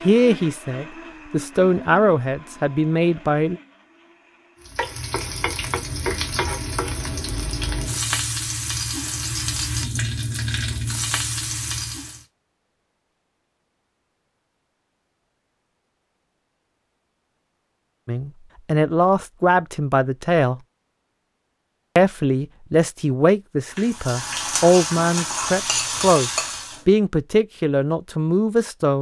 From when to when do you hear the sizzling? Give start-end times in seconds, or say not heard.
4.6-12.2, 23.8-26.9.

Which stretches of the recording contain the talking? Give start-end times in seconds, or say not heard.
0.0-3.6, 18.1-20.6, 21.9-28.9.